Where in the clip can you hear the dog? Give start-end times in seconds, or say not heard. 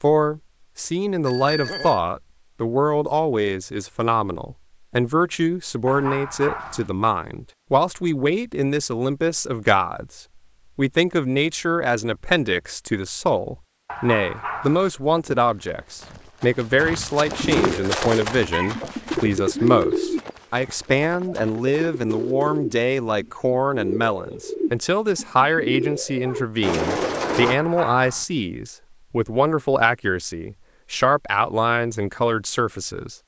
5.8-6.9, 13.8-14.9, 27.2-28.2.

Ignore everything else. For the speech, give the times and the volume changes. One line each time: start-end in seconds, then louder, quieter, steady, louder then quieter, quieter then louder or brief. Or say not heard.
0.0-33.1 steady.